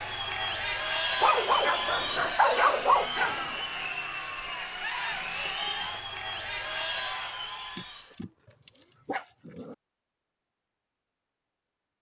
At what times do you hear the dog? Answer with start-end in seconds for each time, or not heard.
1.2-3.6, 7.8-9.8.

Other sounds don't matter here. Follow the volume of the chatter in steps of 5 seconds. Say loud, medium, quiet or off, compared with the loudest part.
loud, loud, off.